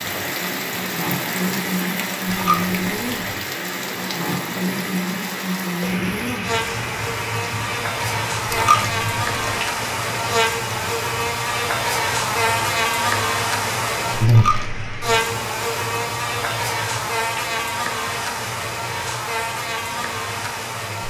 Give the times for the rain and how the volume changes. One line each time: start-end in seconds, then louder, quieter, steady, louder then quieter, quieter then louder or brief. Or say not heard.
0.0-21.0 quieter.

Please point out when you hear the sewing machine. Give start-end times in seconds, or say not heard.
not heard.